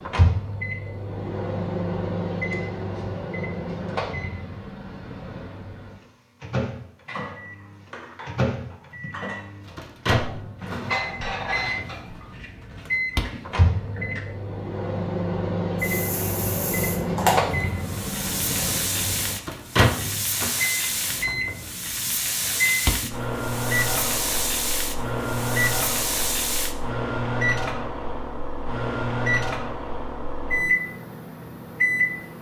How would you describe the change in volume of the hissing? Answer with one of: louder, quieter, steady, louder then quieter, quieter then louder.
steady.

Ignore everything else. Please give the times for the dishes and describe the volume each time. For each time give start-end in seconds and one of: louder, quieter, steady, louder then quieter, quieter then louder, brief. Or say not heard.
7.0-14.3 louder then quieter.